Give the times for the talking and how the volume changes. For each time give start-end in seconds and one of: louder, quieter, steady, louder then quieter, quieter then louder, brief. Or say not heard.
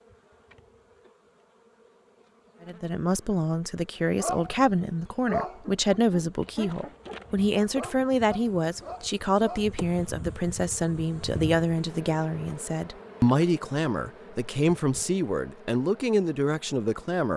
2.6-17.3 steady.